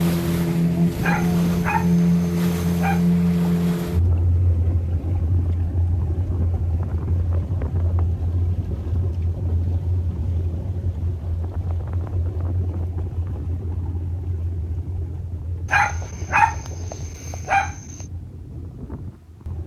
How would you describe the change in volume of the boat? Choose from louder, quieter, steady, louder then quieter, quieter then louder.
quieter.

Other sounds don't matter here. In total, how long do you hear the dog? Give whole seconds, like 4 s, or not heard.
4 s.